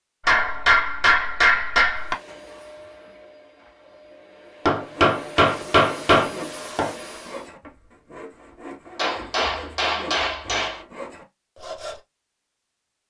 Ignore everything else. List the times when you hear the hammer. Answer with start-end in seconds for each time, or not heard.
0.2-2.1, 4.7-6.9, 8.9-10.8.